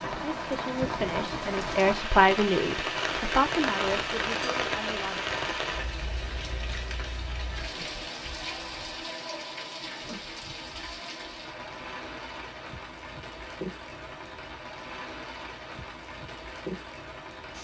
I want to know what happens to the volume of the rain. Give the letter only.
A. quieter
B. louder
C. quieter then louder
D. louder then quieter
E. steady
A.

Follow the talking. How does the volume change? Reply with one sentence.
The volume of the talking goes up, then down.